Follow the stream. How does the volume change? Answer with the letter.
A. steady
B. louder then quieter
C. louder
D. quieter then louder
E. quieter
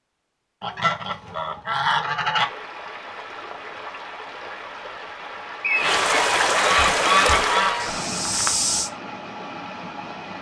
B.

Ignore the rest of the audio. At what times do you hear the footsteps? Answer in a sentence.
The footsteps can be heard from 6.8 to 8.9 s.